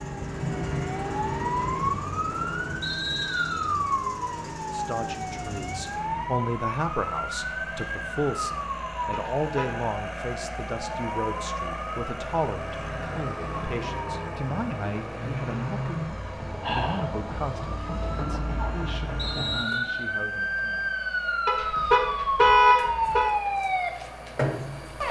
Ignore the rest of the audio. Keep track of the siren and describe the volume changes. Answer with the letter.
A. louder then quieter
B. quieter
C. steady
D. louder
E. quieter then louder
E.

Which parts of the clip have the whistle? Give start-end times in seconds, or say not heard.
2.8-3.6, 19.1-20.1.